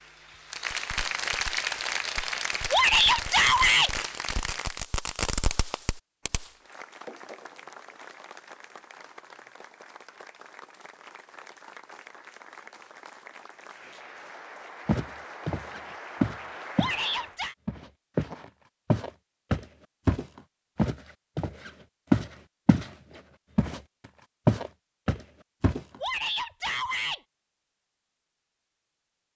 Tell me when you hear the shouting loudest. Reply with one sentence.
The loudest moment of the shouting is at 3 seconds.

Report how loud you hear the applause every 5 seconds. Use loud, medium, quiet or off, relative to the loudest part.
loud, quiet, quiet, medium, off, off.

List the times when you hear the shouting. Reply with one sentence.
The shouting can be heard from 2.7 to 3.9 s, from 16.8 to 17.6 s and from 26.0 to 27.2 s.